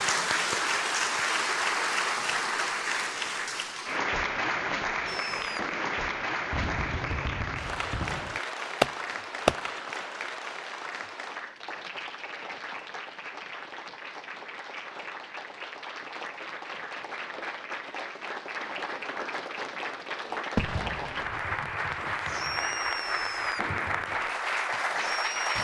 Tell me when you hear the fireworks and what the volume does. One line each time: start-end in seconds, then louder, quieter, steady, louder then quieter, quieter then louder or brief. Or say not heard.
5.0-9.7 louder
20.6-25.5 louder then quieter.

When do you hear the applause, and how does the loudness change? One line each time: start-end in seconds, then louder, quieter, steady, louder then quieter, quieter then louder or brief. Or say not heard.
0.0-25.5 quieter then louder.